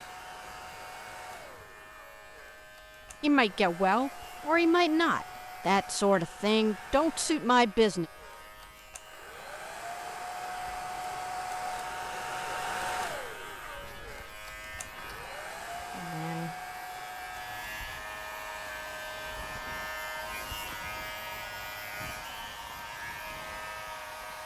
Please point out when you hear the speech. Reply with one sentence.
The speech can be heard from 3.2 to 8.1 s.